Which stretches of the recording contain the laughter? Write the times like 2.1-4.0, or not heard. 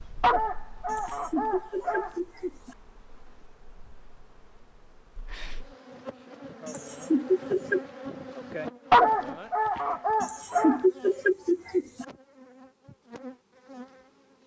0.8-2.8, 6.7-7.8, 10.2-12.1.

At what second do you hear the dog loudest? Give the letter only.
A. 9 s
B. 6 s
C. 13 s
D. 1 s
A.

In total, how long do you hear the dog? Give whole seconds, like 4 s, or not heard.
4 s.